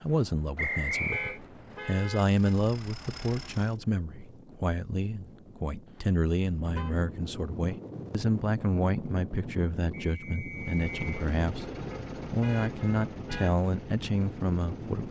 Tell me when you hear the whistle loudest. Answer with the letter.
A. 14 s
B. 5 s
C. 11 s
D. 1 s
D.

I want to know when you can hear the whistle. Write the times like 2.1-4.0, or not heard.
0.6-1.4, 9.9-11.1.